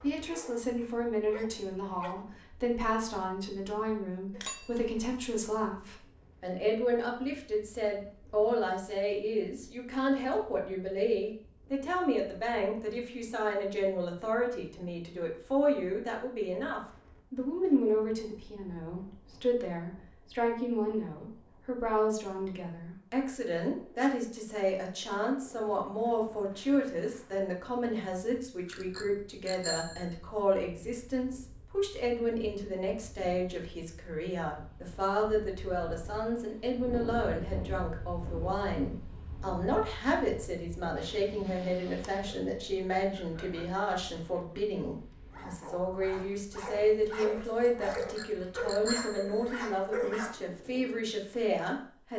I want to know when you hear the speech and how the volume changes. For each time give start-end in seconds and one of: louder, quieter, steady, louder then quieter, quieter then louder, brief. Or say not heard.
0.0-52.1 steady.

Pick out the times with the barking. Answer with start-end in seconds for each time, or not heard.
0.0-2.2, 41.9-50.4.